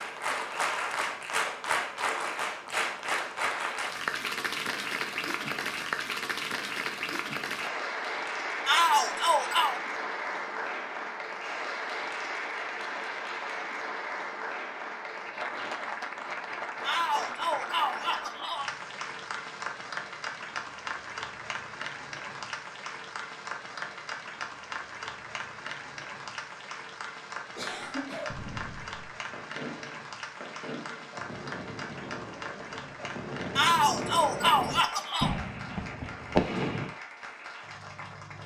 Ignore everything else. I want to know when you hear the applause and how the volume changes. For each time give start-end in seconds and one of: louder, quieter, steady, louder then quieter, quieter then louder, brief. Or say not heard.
0.0-38.4 quieter.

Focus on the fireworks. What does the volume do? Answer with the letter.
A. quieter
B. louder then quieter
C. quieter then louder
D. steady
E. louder
E.